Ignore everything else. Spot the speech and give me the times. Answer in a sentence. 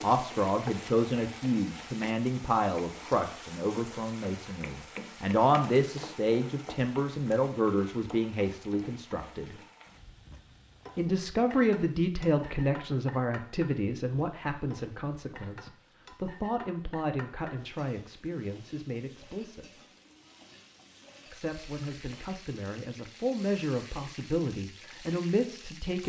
You can hear the speech from 0.0 to 9.6 s, from 10.9 to 19.9 s and from 21.3 to 26.0 s.